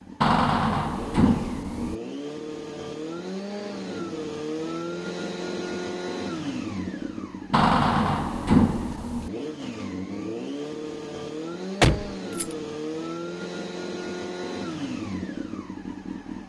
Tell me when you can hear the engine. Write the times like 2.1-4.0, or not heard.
0.0-16.4.